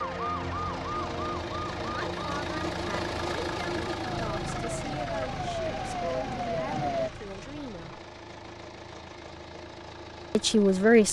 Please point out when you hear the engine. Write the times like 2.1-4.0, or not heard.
0.0-11.0.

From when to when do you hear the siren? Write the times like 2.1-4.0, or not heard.
0.0-7.1.